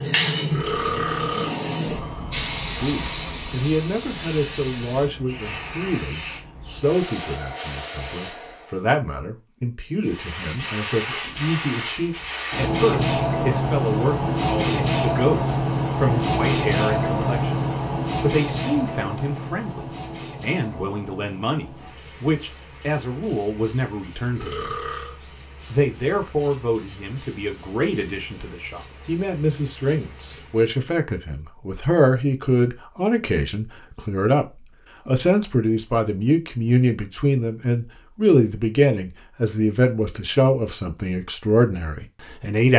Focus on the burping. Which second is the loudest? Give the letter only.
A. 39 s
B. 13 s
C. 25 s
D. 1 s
D.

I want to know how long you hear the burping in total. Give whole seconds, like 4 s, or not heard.
2 s.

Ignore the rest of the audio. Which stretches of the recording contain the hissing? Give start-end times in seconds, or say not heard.
0.0-8.8, 10.0-30.8.